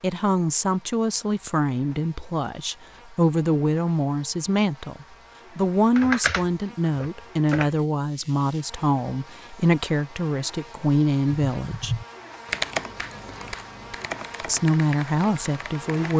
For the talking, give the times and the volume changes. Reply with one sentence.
The talking can be heard from 0.0 to 12.0 s, at a steady volume; and briefly from 14.4 to 16.1 s.